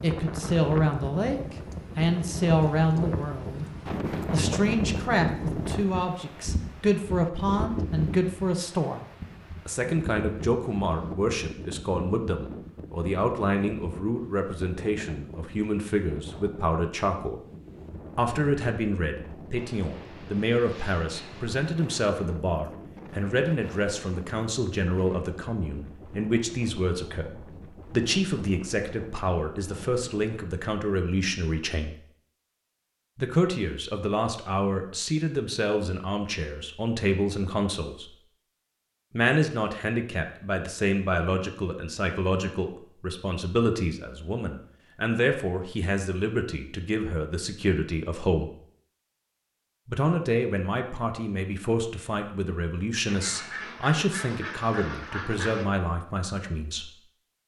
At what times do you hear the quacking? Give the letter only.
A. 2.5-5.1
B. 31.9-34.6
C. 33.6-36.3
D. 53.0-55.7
D.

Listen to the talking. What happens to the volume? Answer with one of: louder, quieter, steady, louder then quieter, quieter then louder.
steady.